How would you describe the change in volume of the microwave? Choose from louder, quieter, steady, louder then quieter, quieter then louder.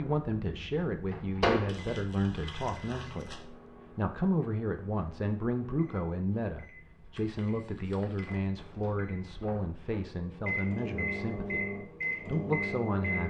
quieter then louder.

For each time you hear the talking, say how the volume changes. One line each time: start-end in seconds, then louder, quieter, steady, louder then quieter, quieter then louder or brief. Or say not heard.
0.0-13.2 steady.